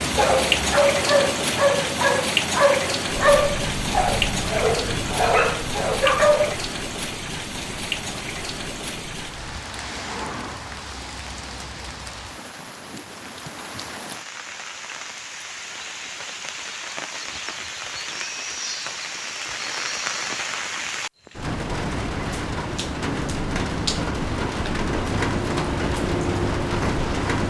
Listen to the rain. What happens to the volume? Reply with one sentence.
The loudness of the rain goes down, then up.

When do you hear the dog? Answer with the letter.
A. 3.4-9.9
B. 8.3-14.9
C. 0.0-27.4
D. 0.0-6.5
D.